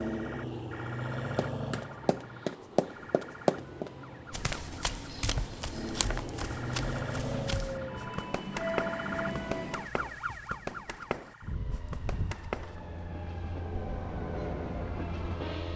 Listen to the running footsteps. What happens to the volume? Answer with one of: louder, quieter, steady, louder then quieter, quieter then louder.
quieter.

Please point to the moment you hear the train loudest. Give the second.
9 s.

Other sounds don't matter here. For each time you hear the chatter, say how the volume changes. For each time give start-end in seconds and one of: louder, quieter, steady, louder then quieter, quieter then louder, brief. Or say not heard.
not heard.